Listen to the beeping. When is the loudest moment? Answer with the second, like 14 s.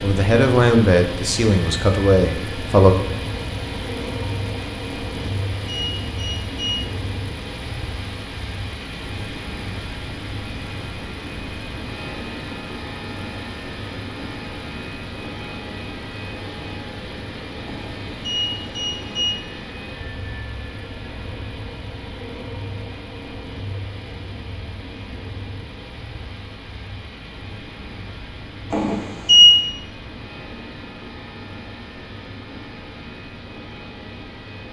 29 s.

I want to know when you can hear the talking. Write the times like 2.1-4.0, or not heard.
0.0-3.0.